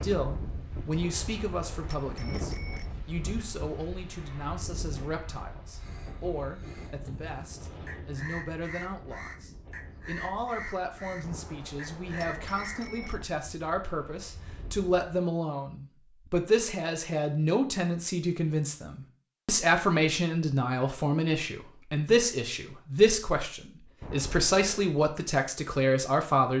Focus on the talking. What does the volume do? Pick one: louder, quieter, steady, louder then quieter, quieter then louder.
louder.